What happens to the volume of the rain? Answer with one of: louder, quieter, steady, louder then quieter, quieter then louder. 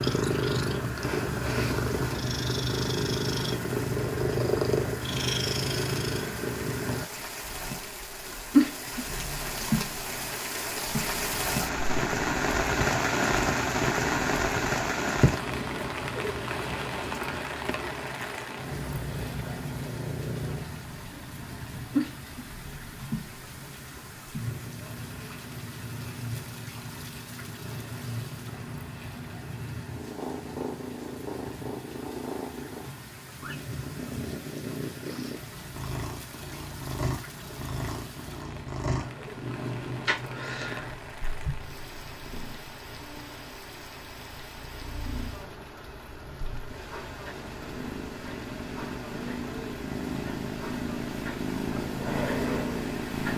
louder then quieter.